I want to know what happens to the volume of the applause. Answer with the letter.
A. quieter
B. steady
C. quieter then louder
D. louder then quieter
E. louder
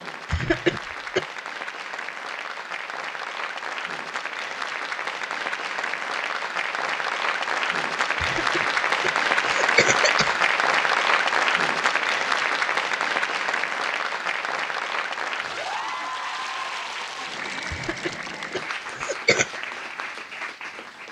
D.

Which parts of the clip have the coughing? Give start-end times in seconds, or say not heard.
0.3-1.2, 8.2-10.3, 17.7-19.6.